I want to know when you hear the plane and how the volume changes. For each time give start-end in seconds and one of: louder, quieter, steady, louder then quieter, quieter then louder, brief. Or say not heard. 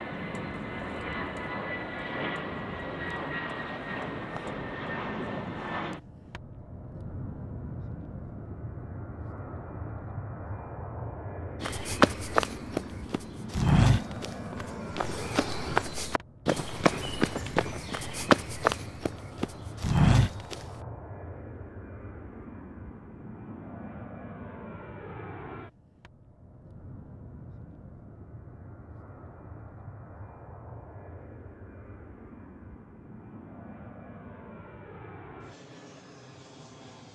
0.0-37.1 quieter.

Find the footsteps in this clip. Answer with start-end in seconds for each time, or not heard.
11.6-20.6.